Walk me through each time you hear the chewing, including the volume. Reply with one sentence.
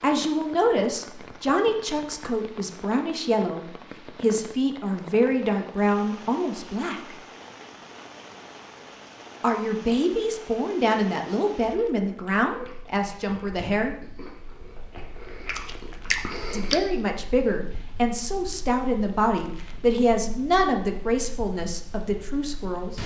You can hear the chewing from 11.6 to 16.8 s, getting louder.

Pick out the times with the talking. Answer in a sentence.
The talking can be heard from 0.0 to 7.2 s, from 9.4 to 13.9 s and from 16.5 to 23.0 s.